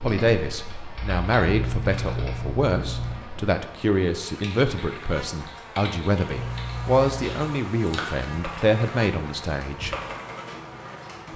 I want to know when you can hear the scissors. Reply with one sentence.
The scissors can be heard from 1.4 to 3.2 s and from 6.3 to 7.3 s.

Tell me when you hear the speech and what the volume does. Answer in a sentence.
The speech can be heard from 0.0 to 9.9 s, at a steady volume.